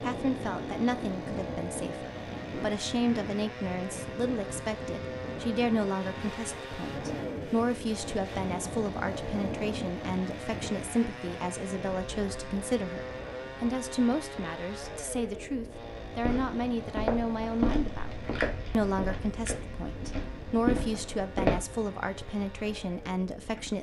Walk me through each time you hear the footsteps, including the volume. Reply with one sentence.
The footsteps can be heard from 16.2 to 21.6 s, getting quieter then louder.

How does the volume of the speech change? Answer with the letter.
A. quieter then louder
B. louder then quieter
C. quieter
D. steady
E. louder
D.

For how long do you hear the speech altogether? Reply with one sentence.
You can hear the speech for 23 seconds altogether.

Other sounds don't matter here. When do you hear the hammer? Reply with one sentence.
The hammer can't be heard in this clip.